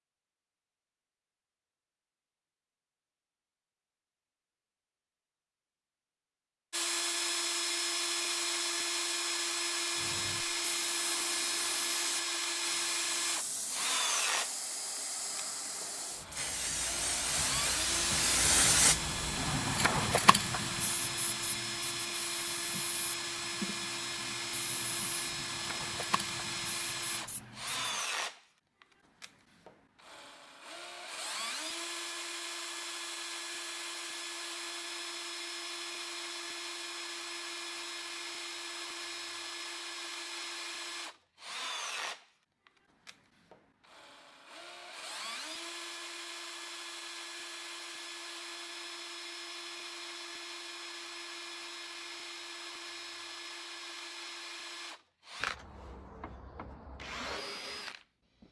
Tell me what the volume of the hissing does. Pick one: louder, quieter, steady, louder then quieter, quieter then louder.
louder then quieter.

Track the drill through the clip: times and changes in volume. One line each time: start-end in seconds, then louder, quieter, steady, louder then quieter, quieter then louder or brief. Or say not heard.
6.7-58.4 quieter.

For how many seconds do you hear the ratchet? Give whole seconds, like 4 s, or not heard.
not heard.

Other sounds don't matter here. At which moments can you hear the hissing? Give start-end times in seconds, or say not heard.
9.9-28.1.